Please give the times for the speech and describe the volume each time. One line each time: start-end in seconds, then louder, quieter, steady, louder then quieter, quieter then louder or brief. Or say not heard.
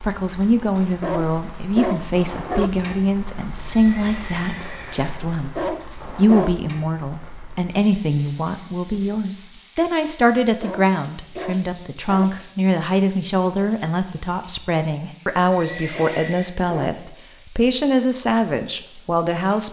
0.0-19.6 steady.